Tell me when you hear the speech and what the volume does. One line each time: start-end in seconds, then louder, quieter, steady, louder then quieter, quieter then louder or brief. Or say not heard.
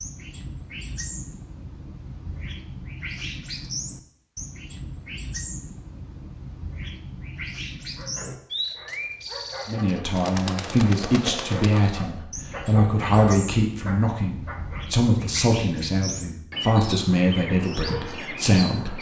9.7-18.9 steady.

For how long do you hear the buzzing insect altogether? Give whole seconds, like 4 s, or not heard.
not heard.